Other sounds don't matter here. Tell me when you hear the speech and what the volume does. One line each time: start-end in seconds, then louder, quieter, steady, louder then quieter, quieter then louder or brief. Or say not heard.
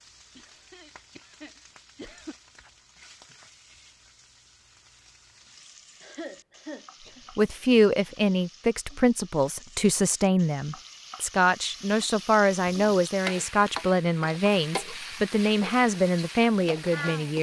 7.3-17.3 steady.